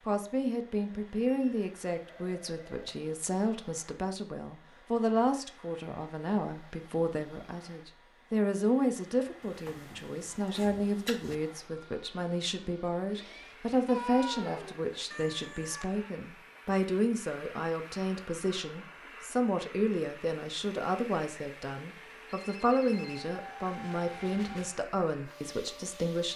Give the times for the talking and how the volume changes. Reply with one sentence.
You can hear the talking from 0.1 to 26.3 s, at a steady volume.